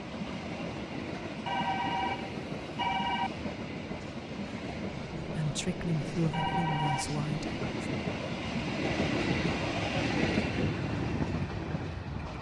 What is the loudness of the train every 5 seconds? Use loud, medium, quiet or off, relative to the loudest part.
medium, loud, loud.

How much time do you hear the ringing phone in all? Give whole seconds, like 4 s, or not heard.
3 s.